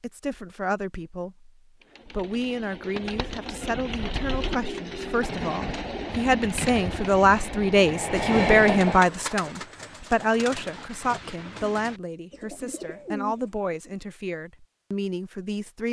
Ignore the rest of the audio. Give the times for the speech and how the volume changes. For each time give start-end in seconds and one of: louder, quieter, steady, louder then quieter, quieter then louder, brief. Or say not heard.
0.0-15.8 louder then quieter.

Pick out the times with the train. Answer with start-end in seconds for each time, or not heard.
5.2-9.1.